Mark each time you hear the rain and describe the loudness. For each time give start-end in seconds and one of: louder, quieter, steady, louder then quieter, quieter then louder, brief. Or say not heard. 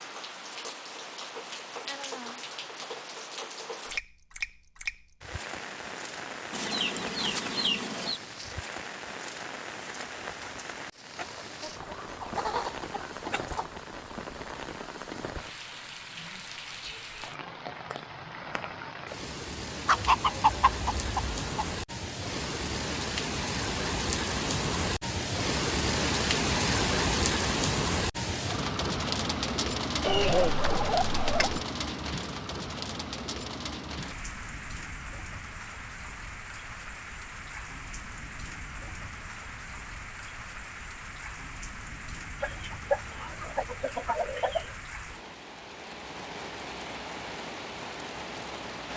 0.0-48.9 louder then quieter.